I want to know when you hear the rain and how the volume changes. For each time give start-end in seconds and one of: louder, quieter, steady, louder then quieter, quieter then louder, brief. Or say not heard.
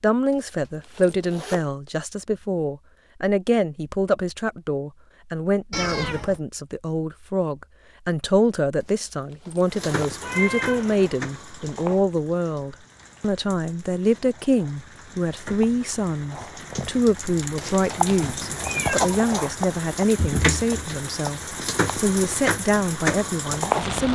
9.7-24.1 quieter then louder.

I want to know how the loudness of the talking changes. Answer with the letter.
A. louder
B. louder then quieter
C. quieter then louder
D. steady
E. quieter
D.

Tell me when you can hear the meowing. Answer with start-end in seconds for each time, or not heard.
5.7-6.4, 10.2-11.2, 18.1-19.2.